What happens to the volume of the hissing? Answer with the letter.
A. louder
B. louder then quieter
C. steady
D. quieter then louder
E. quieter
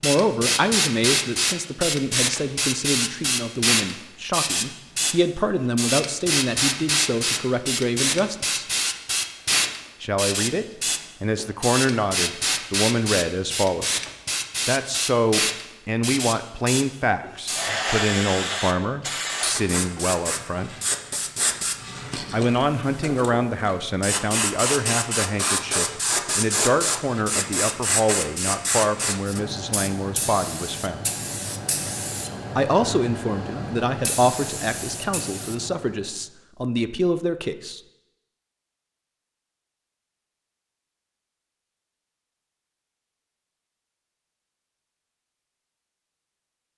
E.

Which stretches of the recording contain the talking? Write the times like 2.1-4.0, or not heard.
0.0-8.7, 10.0-14.1, 14.7-20.8, 22.3-31.1, 32.5-37.8.